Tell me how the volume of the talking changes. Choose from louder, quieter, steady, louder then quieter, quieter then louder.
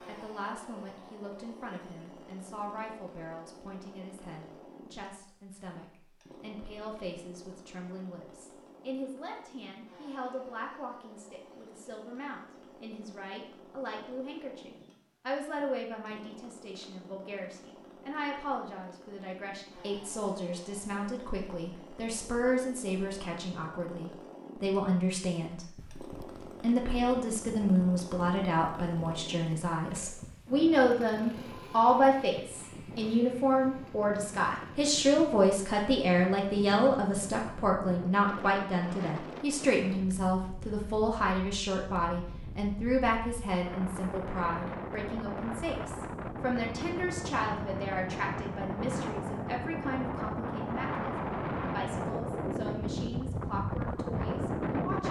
louder then quieter.